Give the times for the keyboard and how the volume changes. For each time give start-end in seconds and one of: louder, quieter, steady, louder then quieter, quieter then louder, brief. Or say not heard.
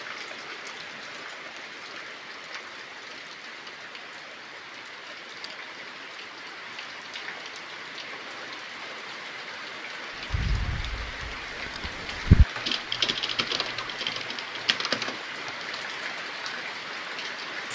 10.3-15.8 louder then quieter.